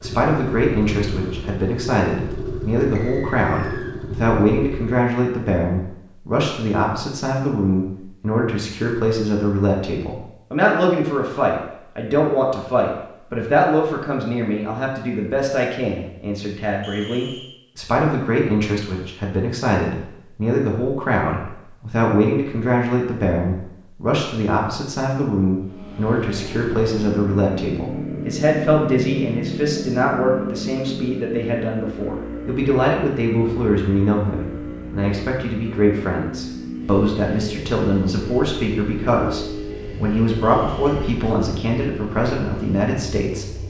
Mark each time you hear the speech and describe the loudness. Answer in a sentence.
You can hear the speech from 0.0 to 43.5 s, at a steady volume.